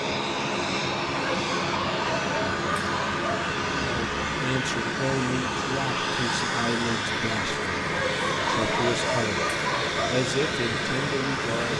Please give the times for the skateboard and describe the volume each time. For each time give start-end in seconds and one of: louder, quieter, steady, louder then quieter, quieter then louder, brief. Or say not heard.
not heard.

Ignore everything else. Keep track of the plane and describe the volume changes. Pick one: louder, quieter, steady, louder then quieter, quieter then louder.
steady.